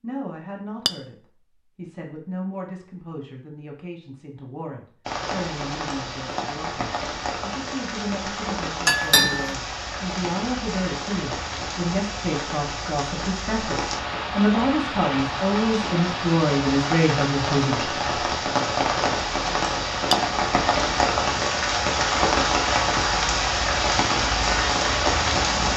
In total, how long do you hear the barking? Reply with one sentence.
The barking can't be heard in this clip.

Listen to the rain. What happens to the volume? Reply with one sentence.
The loudness of the rain goes up.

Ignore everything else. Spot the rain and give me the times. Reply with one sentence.
You can hear the rain from 5.0 to 25.7 s.